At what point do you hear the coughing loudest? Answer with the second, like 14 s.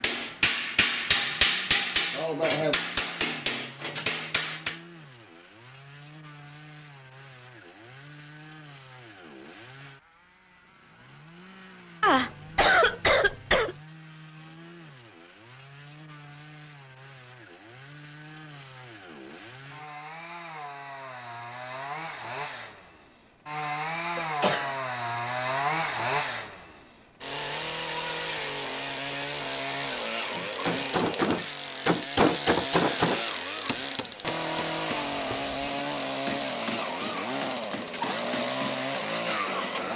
13 s.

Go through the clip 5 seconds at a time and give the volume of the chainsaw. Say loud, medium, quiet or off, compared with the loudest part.
quiet, quiet, quiet, quiet, medium, loud, loud, loud.